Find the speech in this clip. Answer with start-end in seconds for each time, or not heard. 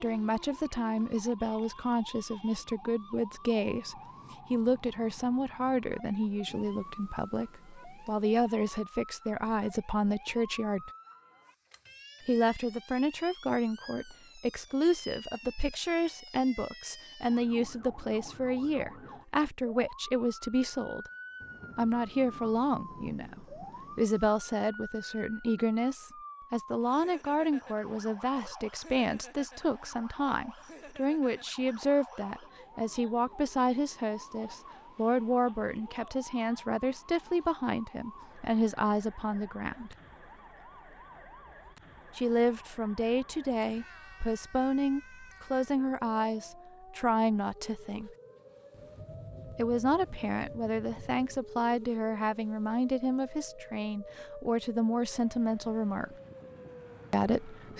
0.0-10.9, 12.2-21.1, 21.8-40.0, 42.1-48.1, 49.5-56.1, 57.1-57.7.